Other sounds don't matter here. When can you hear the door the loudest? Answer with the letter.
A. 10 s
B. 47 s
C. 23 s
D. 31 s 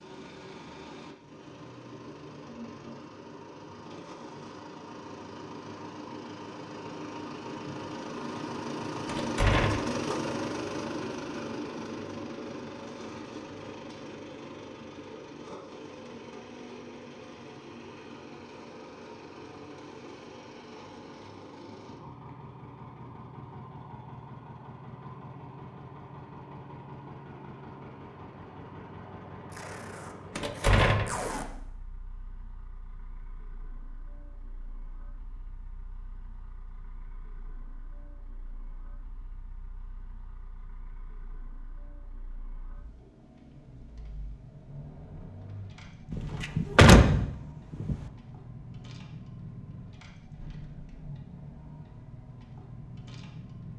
B.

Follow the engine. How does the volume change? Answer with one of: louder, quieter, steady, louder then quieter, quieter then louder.
quieter then louder.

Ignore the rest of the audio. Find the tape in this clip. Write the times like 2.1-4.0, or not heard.
29.5-31.4.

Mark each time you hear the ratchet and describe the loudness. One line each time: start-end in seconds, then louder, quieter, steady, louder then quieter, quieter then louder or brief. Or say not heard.
not heard.